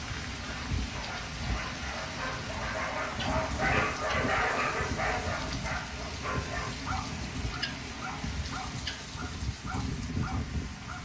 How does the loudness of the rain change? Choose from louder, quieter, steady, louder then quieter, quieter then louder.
steady.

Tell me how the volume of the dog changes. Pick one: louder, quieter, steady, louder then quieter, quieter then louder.
louder then quieter.